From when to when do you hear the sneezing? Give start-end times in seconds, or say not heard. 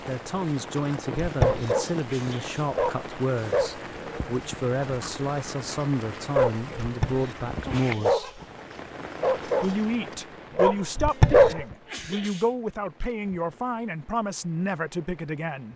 1.2-2.6, 6.8-8.2, 10.9-12.4.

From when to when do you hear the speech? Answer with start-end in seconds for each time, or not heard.
0.1-8.4, 9.6-15.7.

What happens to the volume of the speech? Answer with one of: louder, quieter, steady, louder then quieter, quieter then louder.
steady.